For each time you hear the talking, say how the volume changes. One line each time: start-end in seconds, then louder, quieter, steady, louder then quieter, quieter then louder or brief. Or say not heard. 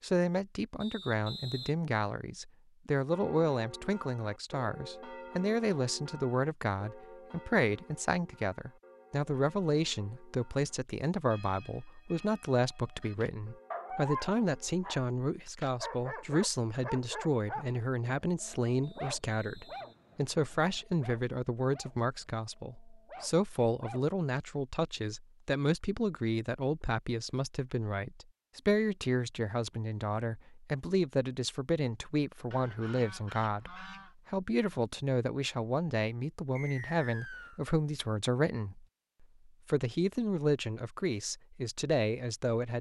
0.0-42.7 steady.